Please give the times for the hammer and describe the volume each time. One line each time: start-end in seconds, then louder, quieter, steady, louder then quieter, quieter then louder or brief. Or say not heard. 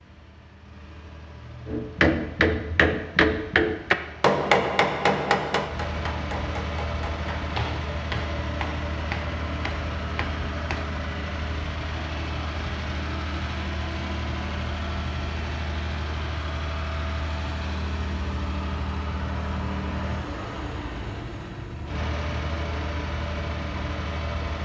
1.6-10.9 quieter.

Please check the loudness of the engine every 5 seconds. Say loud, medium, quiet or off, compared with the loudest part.
quiet, loud, loud, loud, loud.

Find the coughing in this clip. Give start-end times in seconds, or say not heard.
not heard.